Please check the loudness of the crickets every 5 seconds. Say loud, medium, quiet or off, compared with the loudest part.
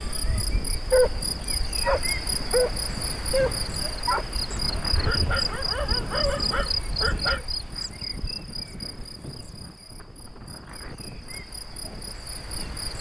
loud, loud, medium.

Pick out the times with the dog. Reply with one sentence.
You can hear the dog from 0.5 to 7.5 s.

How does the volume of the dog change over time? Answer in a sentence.
The volume of the dog goes down.